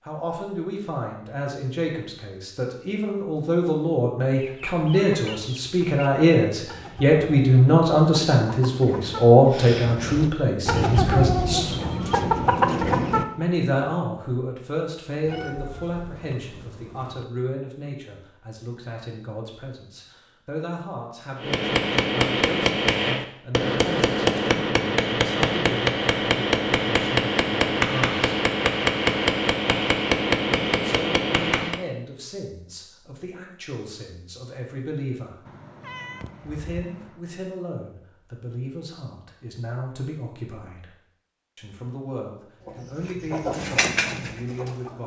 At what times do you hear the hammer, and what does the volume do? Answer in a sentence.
The hammer can be heard from 21.4 to 31.8 s, at a steady volume.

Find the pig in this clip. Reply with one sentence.
You can't hear the pig here.